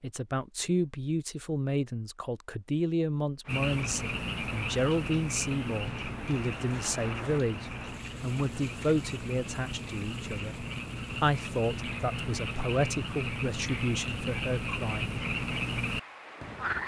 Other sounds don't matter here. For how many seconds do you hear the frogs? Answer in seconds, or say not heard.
13 s.